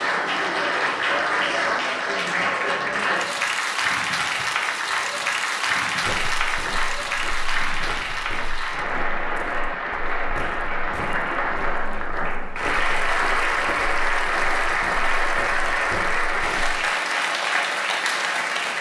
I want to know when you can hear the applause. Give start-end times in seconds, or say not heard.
0.0-18.7.